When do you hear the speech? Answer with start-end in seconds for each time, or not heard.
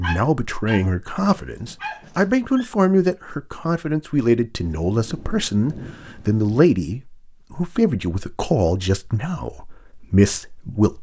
0.0-10.9.